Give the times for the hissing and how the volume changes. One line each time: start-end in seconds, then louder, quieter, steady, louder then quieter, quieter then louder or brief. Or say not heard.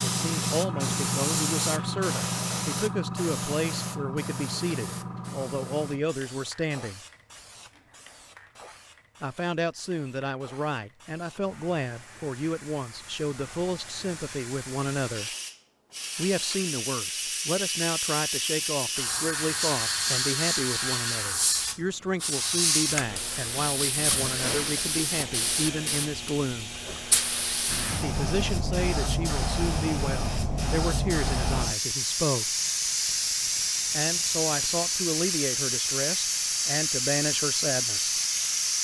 0.0-38.7 quieter then louder.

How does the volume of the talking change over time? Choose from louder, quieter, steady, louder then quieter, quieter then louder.
steady.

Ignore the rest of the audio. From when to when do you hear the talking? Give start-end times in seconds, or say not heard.
0.1-7.0, 9.2-15.3, 16.1-26.7, 28.0-32.5, 33.9-38.2.